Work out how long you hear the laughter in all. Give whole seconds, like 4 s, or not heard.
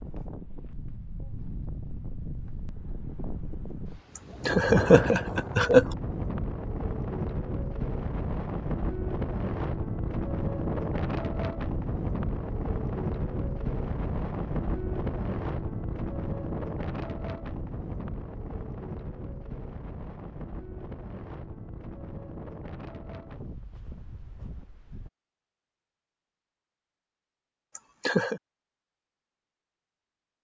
2 s.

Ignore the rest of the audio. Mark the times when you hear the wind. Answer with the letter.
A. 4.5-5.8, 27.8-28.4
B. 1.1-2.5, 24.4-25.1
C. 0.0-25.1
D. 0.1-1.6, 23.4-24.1
C.